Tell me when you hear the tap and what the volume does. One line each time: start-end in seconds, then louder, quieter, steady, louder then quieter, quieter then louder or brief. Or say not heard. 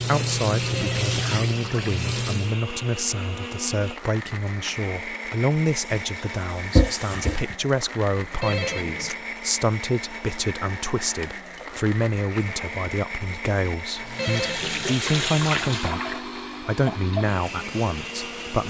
0.0-2.5 brief
5.8-7.5 brief
13.9-18.6 quieter.